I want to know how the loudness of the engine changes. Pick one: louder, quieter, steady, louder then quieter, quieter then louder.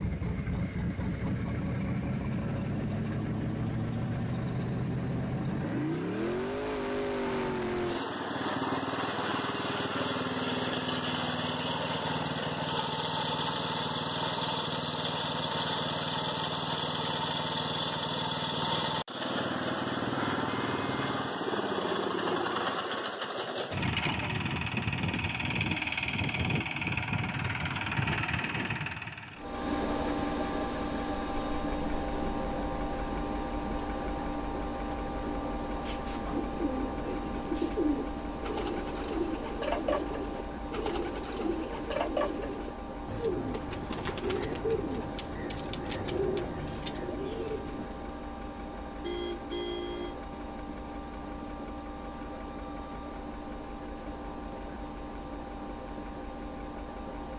quieter.